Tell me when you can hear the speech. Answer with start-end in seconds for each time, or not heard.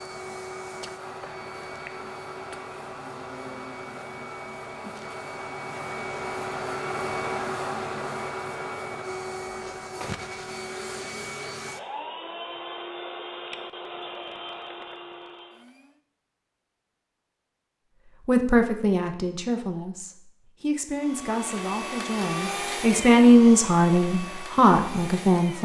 18.2-25.6.